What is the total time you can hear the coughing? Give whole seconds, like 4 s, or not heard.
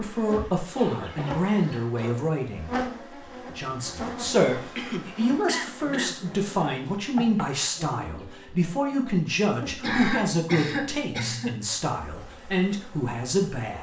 5 s.